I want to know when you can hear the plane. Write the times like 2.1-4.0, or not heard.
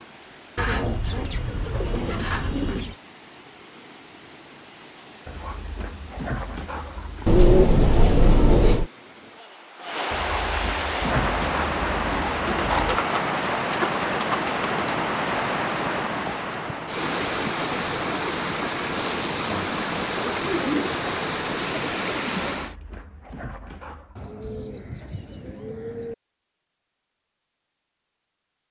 not heard.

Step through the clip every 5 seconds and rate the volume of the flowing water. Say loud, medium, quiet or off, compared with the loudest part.
quiet, quiet, loud, loud, loud, off.